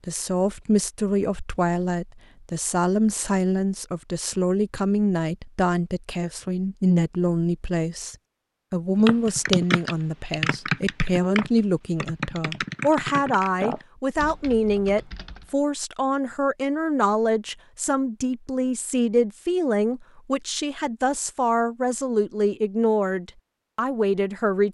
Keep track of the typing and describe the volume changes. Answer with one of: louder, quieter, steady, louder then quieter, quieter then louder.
quieter.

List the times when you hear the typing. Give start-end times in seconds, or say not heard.
9.1-15.6.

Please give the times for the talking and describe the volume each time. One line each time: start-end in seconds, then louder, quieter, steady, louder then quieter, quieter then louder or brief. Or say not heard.
0.1-24.6 steady.